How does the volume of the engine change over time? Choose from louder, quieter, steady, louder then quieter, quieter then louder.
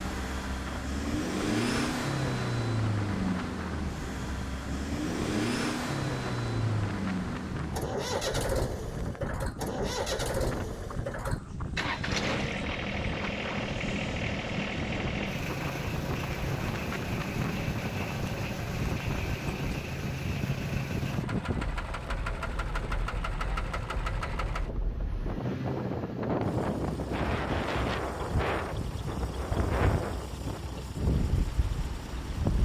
quieter.